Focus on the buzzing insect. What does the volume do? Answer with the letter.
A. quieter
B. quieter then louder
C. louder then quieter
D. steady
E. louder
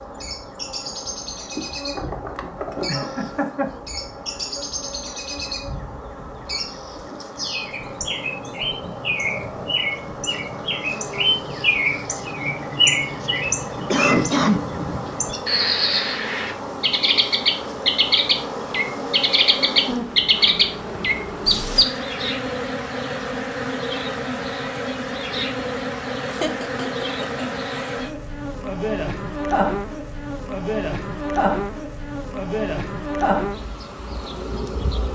E.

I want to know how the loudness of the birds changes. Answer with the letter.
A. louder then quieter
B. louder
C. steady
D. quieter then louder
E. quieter
B.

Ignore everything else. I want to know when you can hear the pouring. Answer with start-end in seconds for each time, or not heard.
not heard.